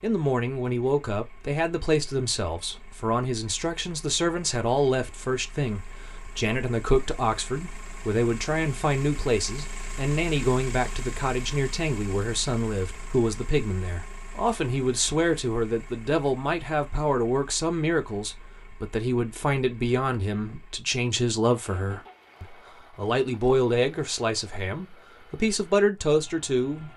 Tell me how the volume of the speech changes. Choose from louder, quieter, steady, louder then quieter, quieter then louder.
steady.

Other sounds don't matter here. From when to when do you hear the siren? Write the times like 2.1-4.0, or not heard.
not heard.